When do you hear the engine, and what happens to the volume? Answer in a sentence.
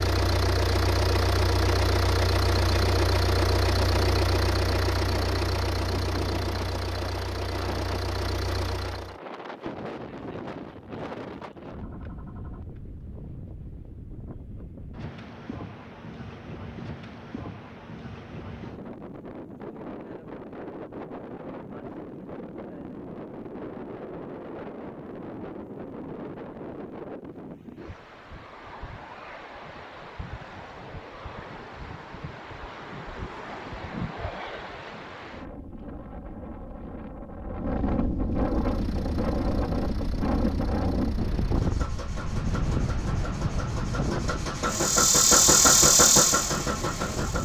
You can hear the engine from 0.0 to 9.2 s, getting quieter; and from 38.2 to 47.4 s, getting louder.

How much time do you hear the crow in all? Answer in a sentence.
You can't hear the crow here.